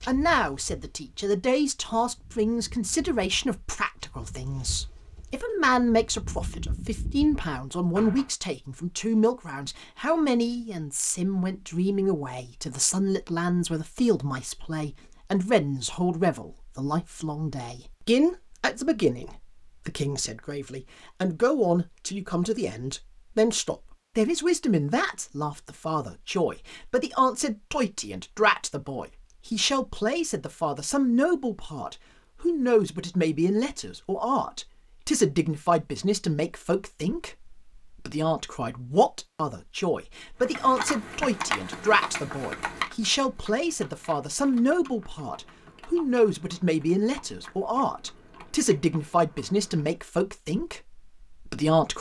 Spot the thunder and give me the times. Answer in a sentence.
You can't hear the thunder here.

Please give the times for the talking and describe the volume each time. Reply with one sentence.
The talking can be heard from 0.1 to 51.9 s, at a steady volume.